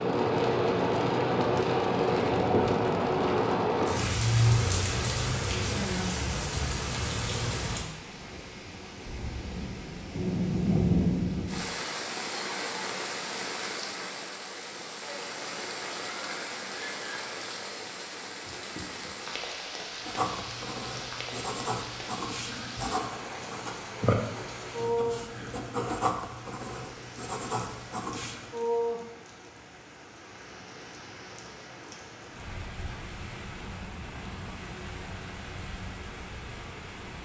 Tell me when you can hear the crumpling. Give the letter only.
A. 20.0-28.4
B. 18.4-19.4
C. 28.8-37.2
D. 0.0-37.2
B.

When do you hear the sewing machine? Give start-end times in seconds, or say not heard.
not heard.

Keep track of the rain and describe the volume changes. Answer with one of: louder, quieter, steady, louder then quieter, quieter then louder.
quieter.